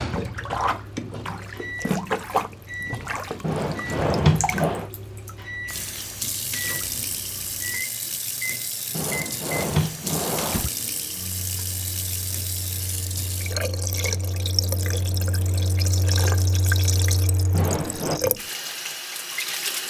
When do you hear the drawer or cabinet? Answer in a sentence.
You can hear the drawer or cabinet from 3.4 to 4.8 s, from 8.9 to 10.7 s and from 17.5 to 18.2 s.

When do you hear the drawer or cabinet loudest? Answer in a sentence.
The loudest moment of the drawer or cabinet is at 4 seconds.